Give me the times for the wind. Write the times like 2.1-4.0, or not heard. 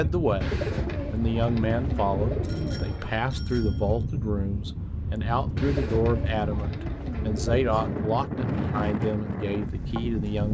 0.0-10.4.